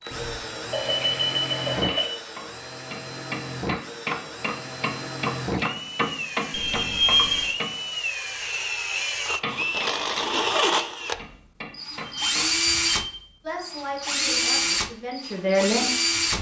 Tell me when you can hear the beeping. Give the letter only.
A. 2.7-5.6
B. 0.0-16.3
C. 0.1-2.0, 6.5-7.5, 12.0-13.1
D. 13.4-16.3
C.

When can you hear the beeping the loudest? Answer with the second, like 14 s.
7 s.